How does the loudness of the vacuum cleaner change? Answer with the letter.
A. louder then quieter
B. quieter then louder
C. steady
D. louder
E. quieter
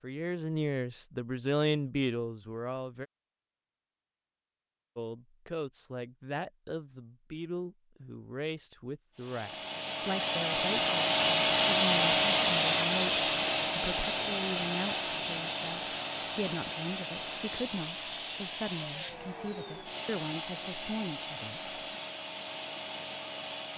E.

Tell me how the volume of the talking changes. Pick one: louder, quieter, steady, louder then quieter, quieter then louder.
quieter.